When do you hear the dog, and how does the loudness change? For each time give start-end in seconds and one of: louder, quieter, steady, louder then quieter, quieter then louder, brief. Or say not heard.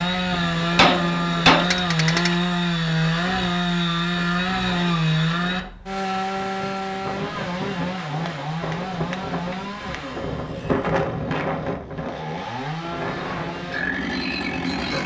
not heard.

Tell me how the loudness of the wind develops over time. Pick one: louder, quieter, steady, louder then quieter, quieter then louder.
louder.